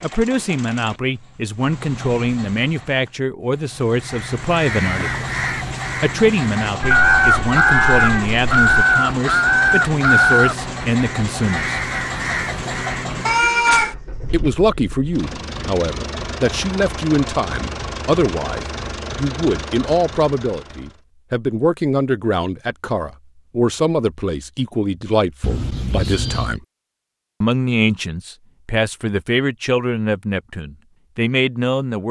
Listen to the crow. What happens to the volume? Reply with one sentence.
The volume of the crow goes up, then down.